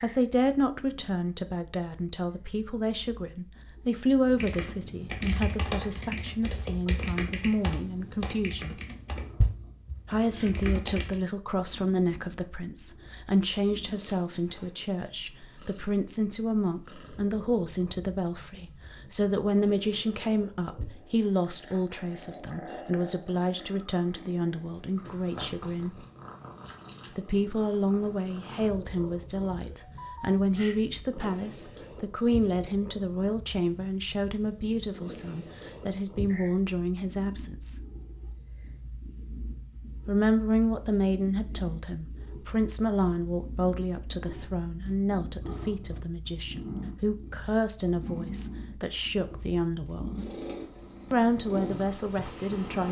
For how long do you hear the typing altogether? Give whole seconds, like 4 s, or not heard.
7 s.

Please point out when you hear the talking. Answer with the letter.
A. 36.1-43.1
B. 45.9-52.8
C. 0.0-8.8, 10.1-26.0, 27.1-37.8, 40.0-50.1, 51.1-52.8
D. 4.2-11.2
C.